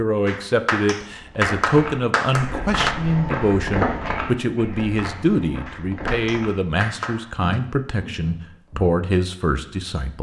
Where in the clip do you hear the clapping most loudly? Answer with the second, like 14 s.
2 s.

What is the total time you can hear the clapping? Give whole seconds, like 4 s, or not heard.
5 s.